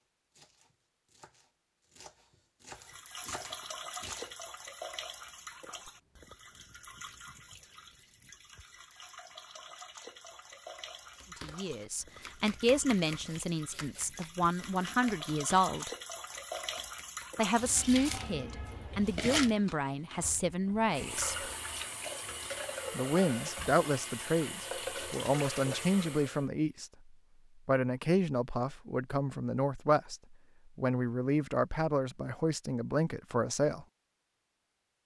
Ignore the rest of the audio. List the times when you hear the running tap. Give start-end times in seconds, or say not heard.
2.7-26.4.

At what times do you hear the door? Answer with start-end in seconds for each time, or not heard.
not heard.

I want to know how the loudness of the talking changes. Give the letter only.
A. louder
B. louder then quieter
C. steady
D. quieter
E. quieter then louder
C.